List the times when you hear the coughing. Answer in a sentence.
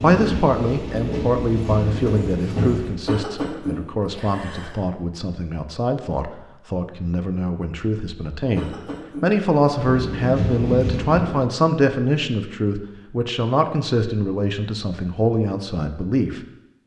You can hear the coughing from 3.0 to 4.8 s and from 8.6 to 9.3 s.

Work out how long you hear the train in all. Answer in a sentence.
You can hear the train for 5 seconds altogether.